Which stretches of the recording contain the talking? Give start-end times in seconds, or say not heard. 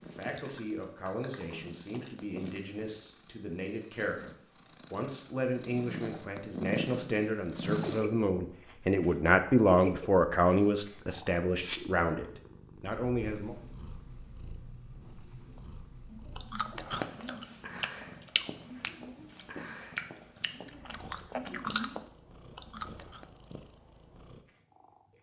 0.0-13.6.